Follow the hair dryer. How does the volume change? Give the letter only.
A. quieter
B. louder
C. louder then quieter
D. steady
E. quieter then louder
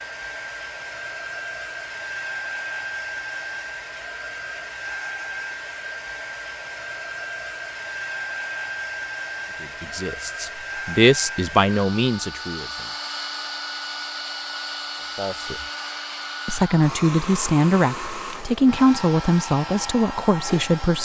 D.